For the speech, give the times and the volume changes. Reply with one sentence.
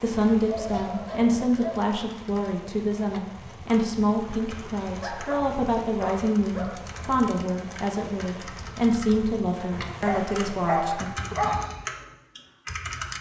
You can hear the speech from 0.0 to 11.1 s, at a steady volume.